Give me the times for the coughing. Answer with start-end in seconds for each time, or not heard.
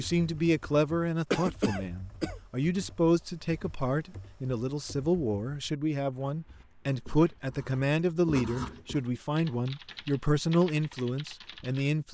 1.3-2.4.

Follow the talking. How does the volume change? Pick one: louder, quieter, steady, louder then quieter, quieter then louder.
steady.